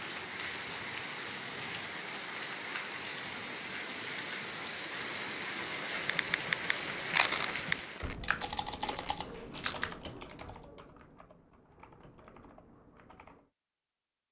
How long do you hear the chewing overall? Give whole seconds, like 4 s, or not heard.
2 s.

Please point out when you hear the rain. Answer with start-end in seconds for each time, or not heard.
0.0-8.2.